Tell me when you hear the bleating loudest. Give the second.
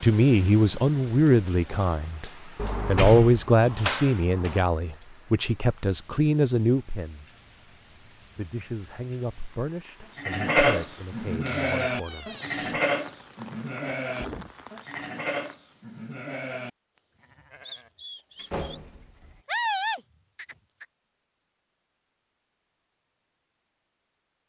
11 s.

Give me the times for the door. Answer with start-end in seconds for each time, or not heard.
2.5-4.6, 11.4-12.8, 18.4-19.4.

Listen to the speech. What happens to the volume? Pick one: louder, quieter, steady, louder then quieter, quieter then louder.
quieter.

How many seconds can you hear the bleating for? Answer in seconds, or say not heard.
9 s.